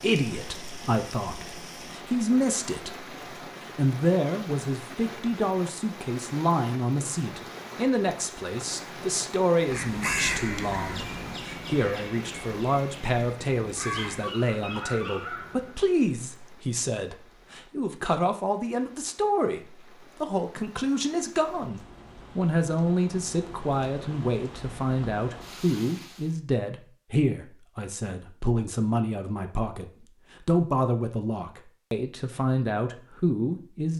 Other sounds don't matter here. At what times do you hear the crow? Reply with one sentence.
The crow can be heard from 9.7 to 15.8 s.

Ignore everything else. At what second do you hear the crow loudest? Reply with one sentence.
The loudest moment of the crow is at 10 seconds.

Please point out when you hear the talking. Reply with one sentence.
You can hear the talking from 0.0 to 33.9 s.